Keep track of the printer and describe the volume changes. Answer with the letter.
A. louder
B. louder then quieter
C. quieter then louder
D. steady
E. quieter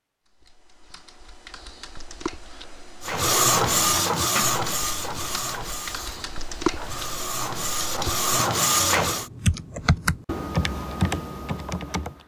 C.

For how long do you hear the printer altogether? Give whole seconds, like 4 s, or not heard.
6 s.